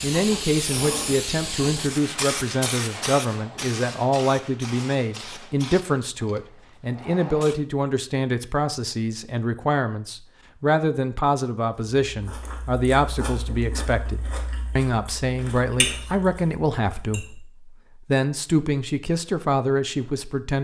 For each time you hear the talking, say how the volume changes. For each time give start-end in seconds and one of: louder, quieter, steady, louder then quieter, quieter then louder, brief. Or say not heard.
0.0-20.5 steady.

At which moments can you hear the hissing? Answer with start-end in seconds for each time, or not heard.
0.0-7.5.